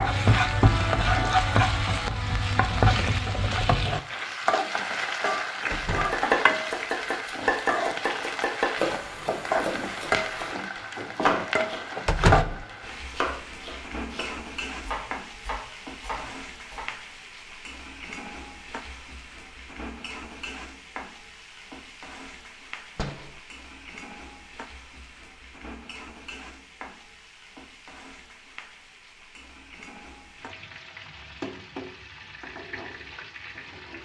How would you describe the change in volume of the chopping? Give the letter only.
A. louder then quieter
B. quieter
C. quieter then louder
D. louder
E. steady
B.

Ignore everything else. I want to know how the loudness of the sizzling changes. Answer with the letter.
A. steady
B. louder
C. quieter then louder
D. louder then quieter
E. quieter
E.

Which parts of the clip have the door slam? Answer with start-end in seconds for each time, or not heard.
5.7-6.2, 12.1-12.7, 22.9-23.4.